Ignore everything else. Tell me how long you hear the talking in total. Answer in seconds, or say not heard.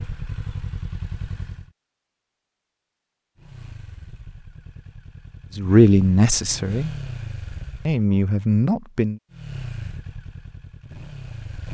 3 s.